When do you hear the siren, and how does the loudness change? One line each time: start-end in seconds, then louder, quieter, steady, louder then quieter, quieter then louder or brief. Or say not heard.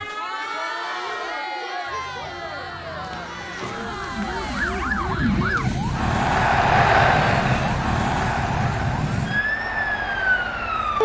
0.0-11.0 louder.